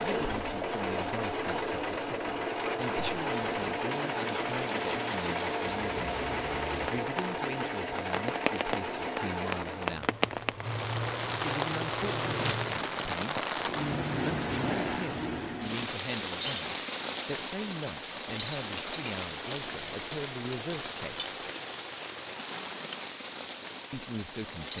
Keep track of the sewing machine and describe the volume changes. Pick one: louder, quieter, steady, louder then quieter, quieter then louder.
quieter.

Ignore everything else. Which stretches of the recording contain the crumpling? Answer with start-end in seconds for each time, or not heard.
12.1-13.2.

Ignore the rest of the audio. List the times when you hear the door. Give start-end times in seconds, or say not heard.
not heard.